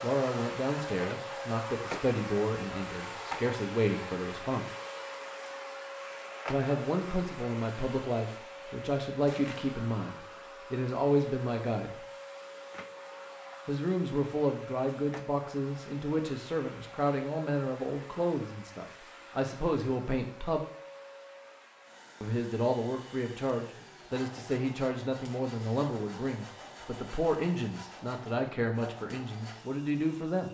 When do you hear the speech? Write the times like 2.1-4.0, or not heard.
0.0-4.7, 6.5-12.1, 13.7-20.6, 22.2-30.4.